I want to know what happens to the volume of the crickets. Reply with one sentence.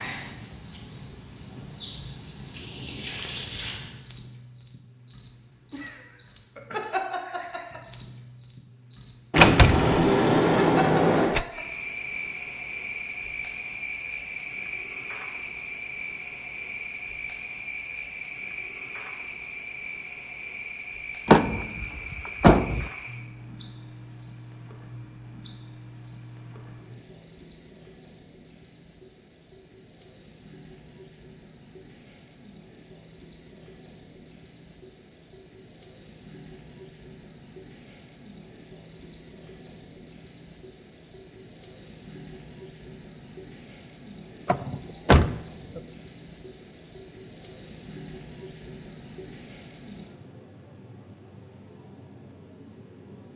The volume of the crickets goes down, then up.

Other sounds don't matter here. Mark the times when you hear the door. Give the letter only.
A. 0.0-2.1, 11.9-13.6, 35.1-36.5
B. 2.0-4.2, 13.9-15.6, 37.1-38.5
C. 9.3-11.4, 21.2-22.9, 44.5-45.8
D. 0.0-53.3
C.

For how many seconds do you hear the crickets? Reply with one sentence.
You can hear the crickets for 53 seconds altogether.